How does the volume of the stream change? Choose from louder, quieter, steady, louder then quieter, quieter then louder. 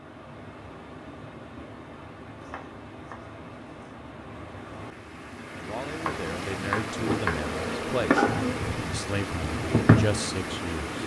louder.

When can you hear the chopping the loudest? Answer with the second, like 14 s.
7 s.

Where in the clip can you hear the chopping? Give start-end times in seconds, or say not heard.
2.4-4.0, 6.0-7.5.